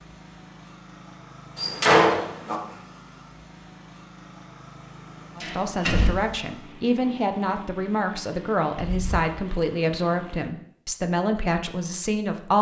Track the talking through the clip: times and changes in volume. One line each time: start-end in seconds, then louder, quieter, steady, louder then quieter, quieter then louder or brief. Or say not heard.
5.3-12.5 steady.